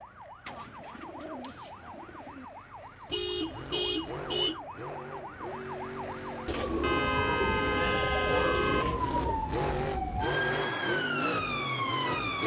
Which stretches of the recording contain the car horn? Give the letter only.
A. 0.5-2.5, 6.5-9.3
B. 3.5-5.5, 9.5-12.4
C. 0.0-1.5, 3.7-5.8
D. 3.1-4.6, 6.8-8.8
D.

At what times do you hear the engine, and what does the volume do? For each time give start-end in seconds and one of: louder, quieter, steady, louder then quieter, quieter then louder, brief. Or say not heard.
3.4-12.4 louder.